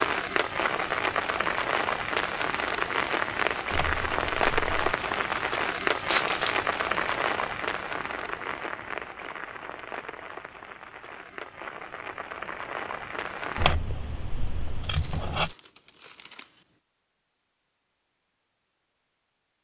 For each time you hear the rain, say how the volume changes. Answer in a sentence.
The rain can be heard from 0.0 to 13.8 s, getting quieter.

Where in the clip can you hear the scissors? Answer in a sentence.
You can hear the scissors from 3.7 to 4.9 s and from 13.6 to 15.5 s.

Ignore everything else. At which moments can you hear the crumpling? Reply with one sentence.
The crumpling can be heard from 5.9 to 6.7 s and from 14.8 to 16.6 s.